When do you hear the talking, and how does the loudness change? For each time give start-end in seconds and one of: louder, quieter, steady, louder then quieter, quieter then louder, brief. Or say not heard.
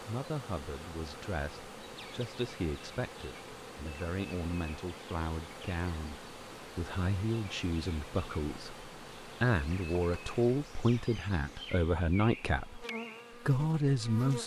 0.0-12.8 louder
13.4-14.4 brief.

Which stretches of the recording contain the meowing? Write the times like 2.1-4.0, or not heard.
not heard.